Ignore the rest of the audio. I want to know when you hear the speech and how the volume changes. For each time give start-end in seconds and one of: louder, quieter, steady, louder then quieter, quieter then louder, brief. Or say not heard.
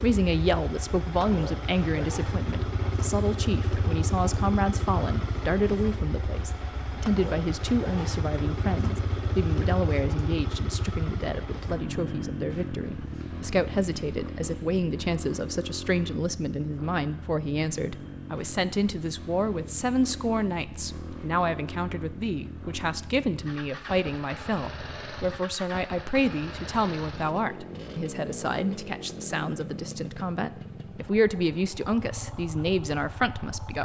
0.0-33.7 steady.